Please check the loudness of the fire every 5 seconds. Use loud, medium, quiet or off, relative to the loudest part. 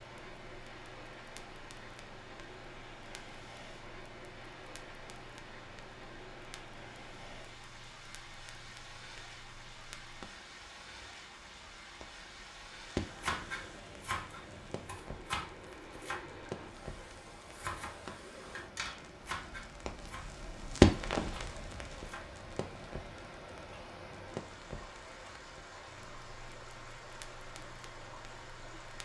quiet, quiet, quiet, quiet, loud, quiet.